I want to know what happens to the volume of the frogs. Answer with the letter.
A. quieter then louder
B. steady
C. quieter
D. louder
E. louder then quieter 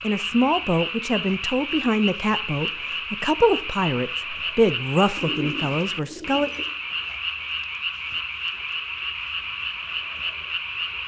B.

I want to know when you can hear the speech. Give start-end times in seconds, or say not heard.
0.0-6.5.